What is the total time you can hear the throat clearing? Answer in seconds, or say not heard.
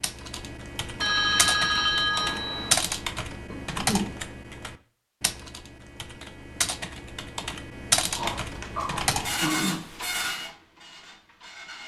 2 s.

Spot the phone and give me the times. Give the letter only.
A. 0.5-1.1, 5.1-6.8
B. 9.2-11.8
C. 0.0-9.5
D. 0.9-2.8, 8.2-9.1
D.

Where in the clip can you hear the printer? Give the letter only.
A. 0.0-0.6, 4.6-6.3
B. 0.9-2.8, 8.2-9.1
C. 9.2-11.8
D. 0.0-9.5
C.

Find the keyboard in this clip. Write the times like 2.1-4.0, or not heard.
0.0-9.5.